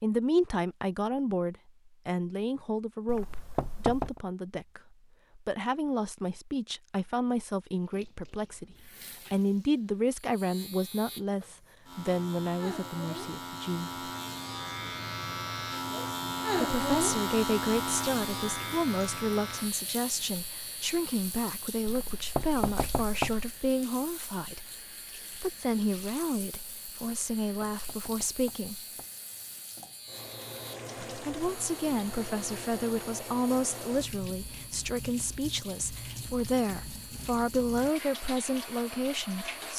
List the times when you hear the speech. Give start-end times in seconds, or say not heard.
0.0-14.1, 16.6-24.7, 25.3-28.8, 31.1-39.7.